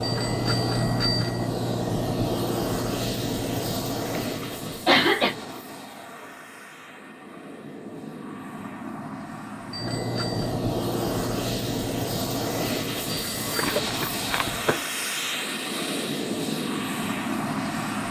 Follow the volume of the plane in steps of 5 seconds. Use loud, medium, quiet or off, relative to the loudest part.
loud, medium, loud, loud.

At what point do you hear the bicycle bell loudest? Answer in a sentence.
The volume of the bicycle bell peaks at 1 second.